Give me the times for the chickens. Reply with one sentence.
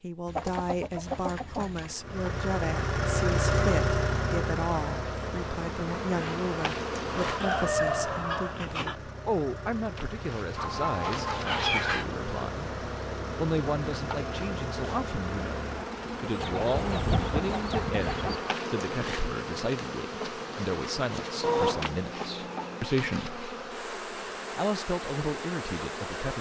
The chickens can be heard from 0.2 to 1.9 s, from 7.0 to 8.9 s, from 10.6 to 12.1 s, from 16.4 to 18.4 s and from 21.4 to 22.9 s.